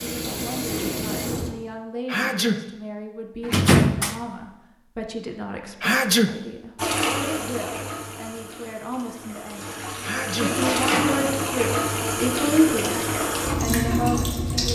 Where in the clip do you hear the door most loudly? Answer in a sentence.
The volume of the door peaks at 4 seconds.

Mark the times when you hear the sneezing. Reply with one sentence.
You can hear the sneezing from 2.0 to 2.6 s, from 5.8 to 6.3 s and from 10.0 to 10.5 s.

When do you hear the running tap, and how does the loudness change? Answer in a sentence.
You can hear the running tap briefly from 0.0 to 1.6 s; and from 6.8 to 14.7 s, getting quieter then louder.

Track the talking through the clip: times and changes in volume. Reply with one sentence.
The talking can be heard from 0.0 to 12.9 s, getting louder; and briefly from 13.6 to 14.7 s.